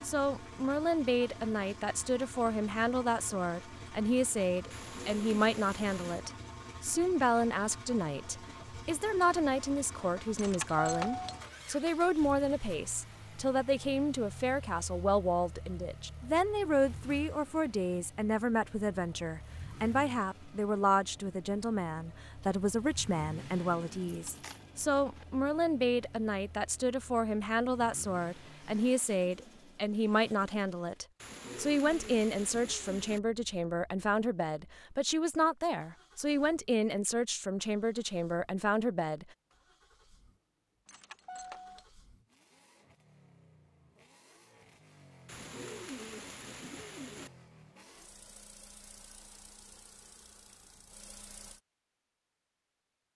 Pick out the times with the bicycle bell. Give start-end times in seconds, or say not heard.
not heard.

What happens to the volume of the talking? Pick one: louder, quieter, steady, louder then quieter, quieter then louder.
steady.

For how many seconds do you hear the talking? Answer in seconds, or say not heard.
39 s.